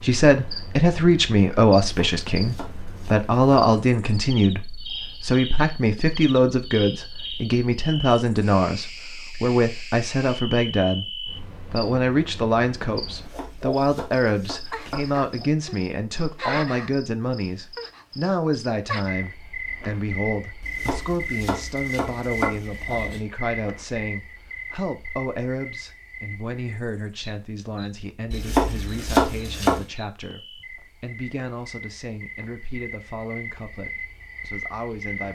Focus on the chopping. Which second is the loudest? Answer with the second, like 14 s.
29 s.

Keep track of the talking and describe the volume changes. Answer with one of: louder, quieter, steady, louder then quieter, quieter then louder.
quieter.